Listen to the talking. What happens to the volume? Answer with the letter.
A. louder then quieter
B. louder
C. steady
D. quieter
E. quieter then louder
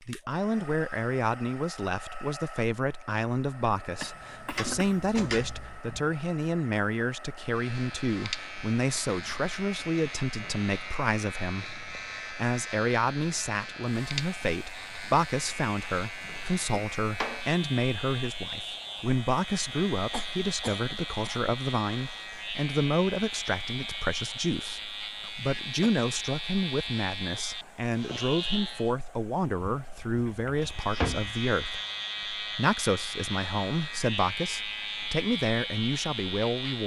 C.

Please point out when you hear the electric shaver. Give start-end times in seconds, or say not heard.
7.4-28.9, 30.6-36.8.